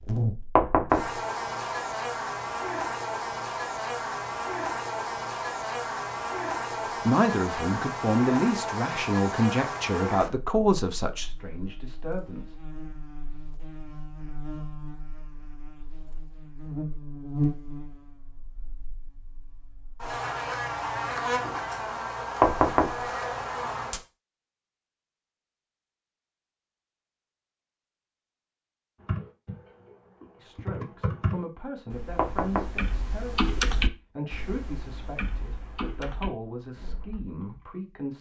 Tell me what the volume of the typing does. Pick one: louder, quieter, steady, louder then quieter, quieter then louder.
louder then quieter.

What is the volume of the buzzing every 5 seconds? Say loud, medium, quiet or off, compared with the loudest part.
loud, loud, medium, medium, loud, off, off, off.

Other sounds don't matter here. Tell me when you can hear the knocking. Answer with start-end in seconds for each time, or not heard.
0.6-1.1, 22.4-23.1, 32.1-32.8.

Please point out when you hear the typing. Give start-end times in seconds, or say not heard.
29.0-37.6.